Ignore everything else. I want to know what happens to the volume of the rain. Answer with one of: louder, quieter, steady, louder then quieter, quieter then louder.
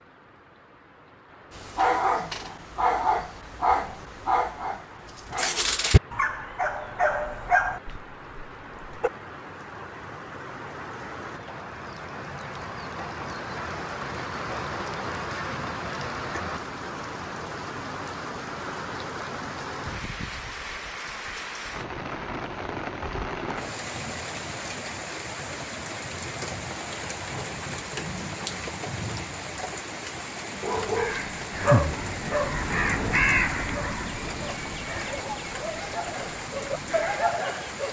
louder.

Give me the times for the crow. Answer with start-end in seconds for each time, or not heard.
30.8-37.2.